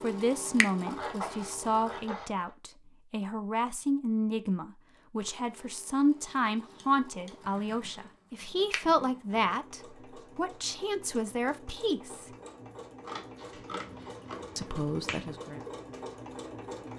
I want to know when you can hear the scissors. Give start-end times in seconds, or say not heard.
0.8-2.5, 6.8-7.4, 13.0-14.6.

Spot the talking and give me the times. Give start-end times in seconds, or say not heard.
0.0-12.2, 14.6-15.6.